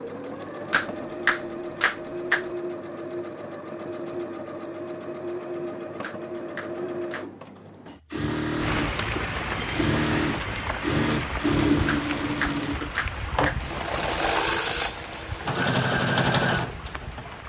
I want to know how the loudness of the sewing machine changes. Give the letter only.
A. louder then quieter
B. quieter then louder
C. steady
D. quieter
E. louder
E.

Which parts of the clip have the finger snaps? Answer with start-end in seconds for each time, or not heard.
0.7-2.5, 6.0-7.2, 11.8-13.6.